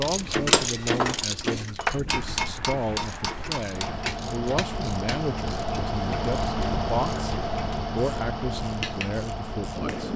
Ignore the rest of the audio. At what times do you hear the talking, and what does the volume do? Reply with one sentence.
You can hear the talking from 0.0 to 10.1 s, at a steady volume.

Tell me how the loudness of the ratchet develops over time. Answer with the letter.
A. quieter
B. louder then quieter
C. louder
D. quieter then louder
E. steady
A.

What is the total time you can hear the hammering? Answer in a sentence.
The hammering can be heard for 6 seconds in total.